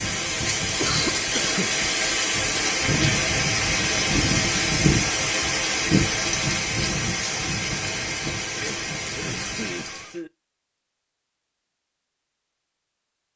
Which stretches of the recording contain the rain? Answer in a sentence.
The rain can be heard from 0.0 to 10.2 s.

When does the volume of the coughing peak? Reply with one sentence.
The loudest moment of the coughing is at 1 second.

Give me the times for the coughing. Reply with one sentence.
The coughing can be heard from 0.8 to 1.9 s and from 8.5 to 10.3 s.